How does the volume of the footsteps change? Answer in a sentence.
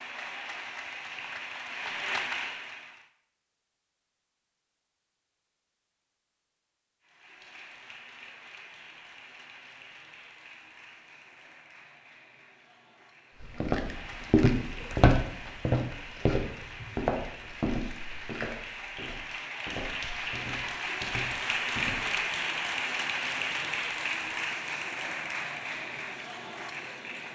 The loudness of the footsteps goes down.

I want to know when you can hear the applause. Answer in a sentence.
You can hear the applause from 0.0 to 3.1 s and from 7.0 to 27.2 s.